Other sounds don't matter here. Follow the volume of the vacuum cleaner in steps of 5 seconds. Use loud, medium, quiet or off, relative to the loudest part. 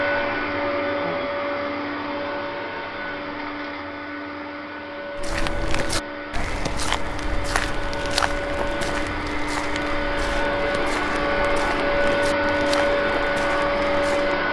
medium, medium, loud.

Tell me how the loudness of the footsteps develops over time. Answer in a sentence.
The volume of the footsteps goes down.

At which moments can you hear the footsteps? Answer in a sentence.
The footsteps can be heard from 5.2 to 14.4 s.